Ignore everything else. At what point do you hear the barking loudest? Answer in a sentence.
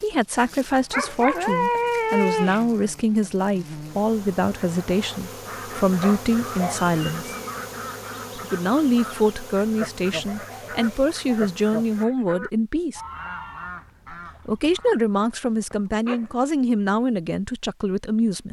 The volume of the barking peaks at 2 seconds.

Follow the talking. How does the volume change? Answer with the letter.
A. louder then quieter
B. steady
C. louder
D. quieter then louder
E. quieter
B.